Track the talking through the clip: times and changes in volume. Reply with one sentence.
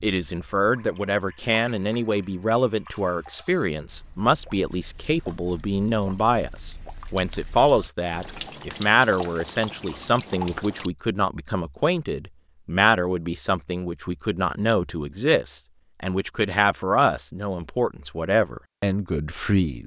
The talking can be heard from 0.0 to 19.8 s, at a steady volume.